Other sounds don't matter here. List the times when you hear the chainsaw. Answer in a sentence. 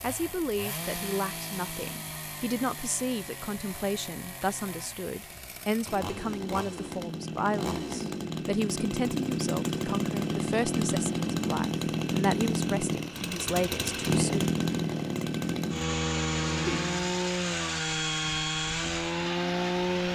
The chainsaw can be heard from 0.0 to 20.1 s.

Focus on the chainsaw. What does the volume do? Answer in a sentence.
The volume of the chainsaw goes up.